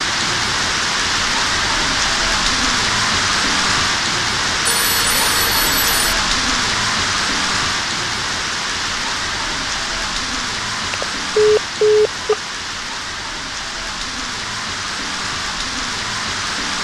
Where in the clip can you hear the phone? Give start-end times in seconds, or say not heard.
4.6-6.0, 10.8-12.3.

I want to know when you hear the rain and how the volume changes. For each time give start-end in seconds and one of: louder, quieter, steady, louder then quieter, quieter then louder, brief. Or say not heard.
0.0-16.7 quieter.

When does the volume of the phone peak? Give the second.
12 s.